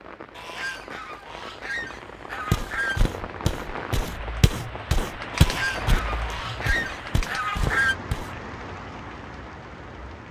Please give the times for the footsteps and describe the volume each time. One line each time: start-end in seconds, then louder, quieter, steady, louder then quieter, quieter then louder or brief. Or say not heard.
2.5-8.3 louder then quieter.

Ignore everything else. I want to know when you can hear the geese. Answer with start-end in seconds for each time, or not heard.
0.3-3.1, 5.3-8.0.